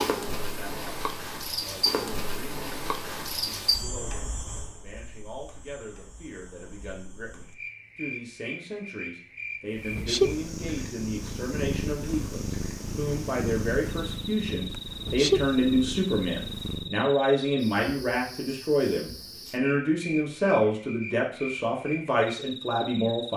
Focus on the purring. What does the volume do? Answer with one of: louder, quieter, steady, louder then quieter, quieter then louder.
quieter then louder.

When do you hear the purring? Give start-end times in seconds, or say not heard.
9.8-16.9.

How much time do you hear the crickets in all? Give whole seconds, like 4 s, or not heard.
23 s.